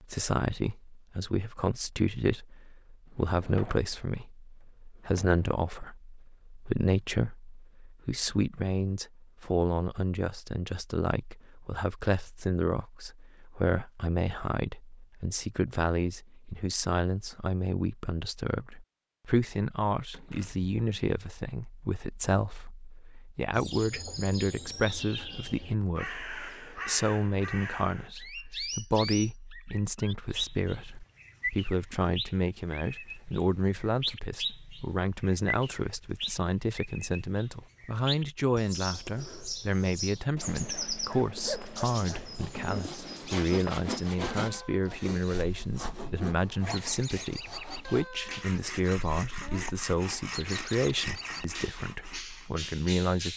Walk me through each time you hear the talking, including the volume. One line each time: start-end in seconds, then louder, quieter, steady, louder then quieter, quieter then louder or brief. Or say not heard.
0.0-53.3 steady.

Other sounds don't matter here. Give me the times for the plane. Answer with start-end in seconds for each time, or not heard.
not heard.